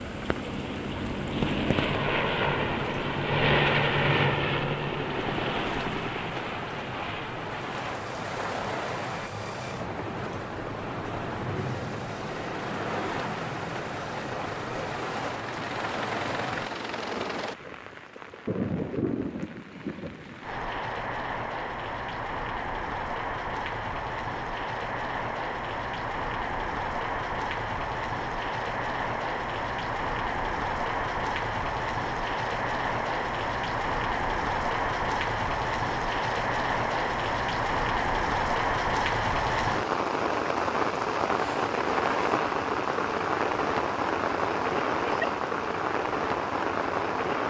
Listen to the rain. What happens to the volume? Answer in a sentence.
The volume of the rain goes up.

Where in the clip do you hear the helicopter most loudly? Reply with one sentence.
The volume of the helicopter peaks at 4 seconds.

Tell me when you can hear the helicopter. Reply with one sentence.
The helicopter can be heard from 0.0 to 17.6 s.